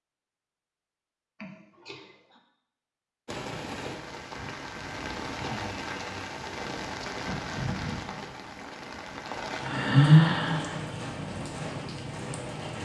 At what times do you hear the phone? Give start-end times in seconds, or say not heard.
not heard.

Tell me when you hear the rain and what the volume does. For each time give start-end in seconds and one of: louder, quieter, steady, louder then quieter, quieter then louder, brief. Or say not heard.
3.2-12.8 steady.